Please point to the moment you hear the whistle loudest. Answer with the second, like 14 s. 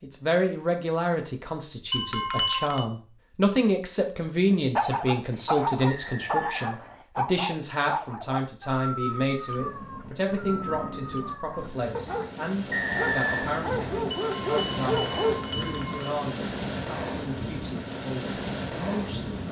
13 s.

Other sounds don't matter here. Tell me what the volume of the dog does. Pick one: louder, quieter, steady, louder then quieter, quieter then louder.
quieter then louder.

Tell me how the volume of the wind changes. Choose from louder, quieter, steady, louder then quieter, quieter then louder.
louder.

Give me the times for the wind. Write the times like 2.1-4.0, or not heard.
9.5-19.4.